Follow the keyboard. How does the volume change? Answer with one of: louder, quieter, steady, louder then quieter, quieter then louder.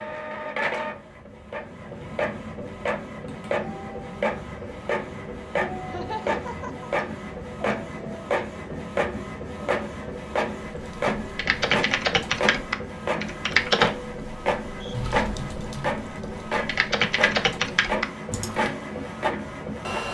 quieter then louder.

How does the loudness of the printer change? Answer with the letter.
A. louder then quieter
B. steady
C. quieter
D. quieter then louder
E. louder
B.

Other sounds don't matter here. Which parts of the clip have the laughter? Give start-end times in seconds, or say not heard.
5.8-6.9.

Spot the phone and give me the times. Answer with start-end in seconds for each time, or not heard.
not heard.